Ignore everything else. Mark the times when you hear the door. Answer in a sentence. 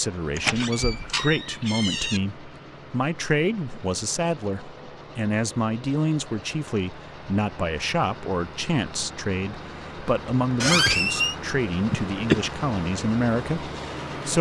You can hear the door from 0.3 to 2.2 s and from 10.6 to 11.3 s.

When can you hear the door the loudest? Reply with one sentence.
The volume of the door peaks at 11 seconds.